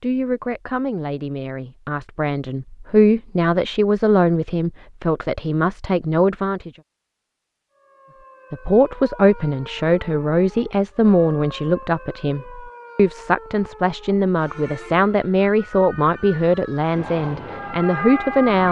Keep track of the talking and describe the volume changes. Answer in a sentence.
The volume of the talking stays about the same.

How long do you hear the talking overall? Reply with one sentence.
The talking can be heard for 17 seconds in total.